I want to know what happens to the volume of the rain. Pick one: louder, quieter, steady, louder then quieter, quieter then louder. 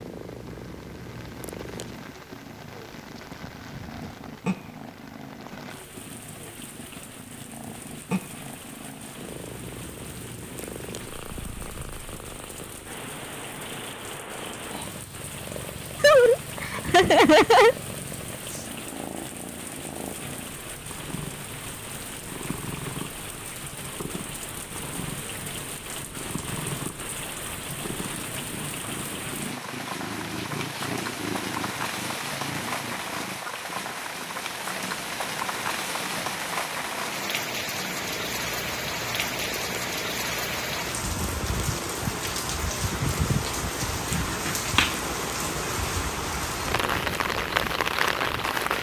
louder.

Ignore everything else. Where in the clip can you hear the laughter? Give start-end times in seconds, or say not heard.
16.0-17.8.